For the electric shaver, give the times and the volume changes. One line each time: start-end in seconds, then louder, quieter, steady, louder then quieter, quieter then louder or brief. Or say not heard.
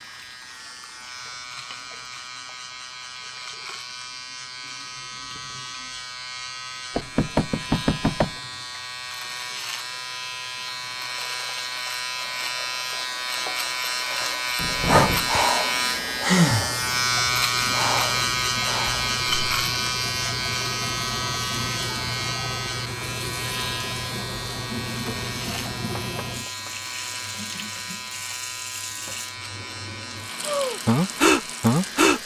0.0-32.2 louder then quieter.